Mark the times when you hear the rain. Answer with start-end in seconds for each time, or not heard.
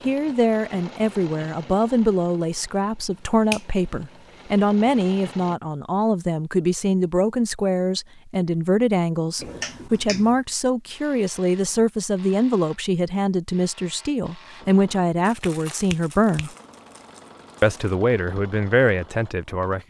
not heard.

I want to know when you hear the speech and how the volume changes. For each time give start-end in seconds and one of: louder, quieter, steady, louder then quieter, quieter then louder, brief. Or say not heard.
0.1-16.5 steady
17.6-19.8 brief.